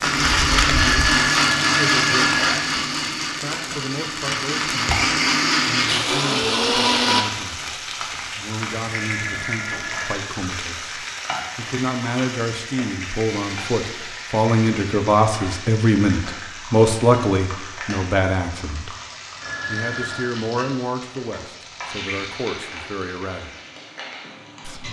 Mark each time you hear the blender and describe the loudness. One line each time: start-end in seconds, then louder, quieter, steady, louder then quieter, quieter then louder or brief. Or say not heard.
0.0-7.2 quieter then louder.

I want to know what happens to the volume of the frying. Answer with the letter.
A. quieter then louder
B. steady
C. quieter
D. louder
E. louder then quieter
C.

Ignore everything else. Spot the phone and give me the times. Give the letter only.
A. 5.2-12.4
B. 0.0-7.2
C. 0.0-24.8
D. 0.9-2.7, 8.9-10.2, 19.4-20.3
D.